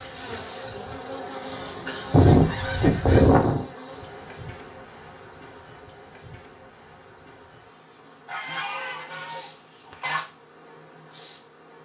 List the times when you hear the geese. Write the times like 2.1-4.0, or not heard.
2.1-3.6, 8.2-10.2.